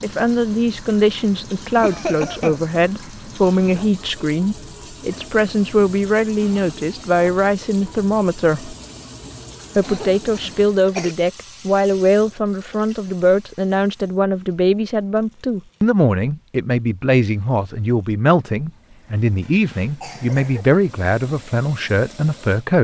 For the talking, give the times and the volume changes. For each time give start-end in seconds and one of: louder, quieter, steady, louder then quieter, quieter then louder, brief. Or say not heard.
0.0-8.8 steady
9.8-22.7 steady.